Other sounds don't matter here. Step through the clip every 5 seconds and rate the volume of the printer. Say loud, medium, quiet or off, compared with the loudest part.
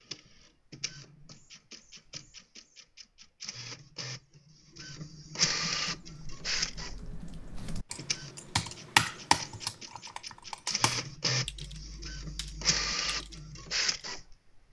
quiet, loud, loud.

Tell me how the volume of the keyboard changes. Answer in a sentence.
The loudness of the keyboard goes up, then down.